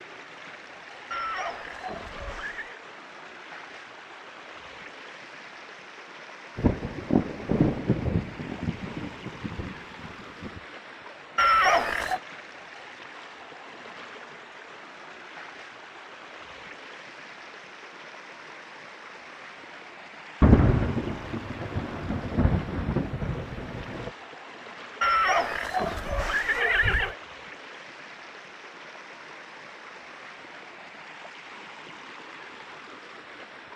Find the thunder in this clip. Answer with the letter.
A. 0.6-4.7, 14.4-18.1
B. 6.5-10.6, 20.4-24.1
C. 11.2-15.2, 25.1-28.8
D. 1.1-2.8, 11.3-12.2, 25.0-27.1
B.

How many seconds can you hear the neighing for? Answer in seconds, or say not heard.
5 s.